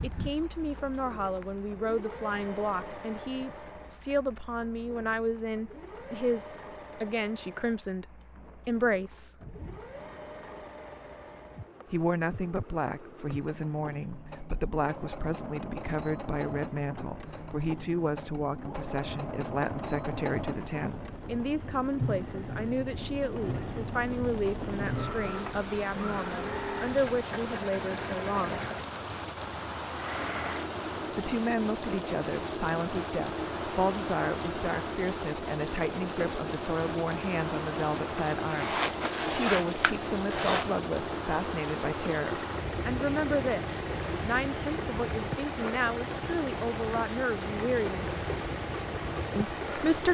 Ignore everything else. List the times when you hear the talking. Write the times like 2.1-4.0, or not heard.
0.0-9.3, 11.9-28.6, 31.1-48.1, 49.4-50.0.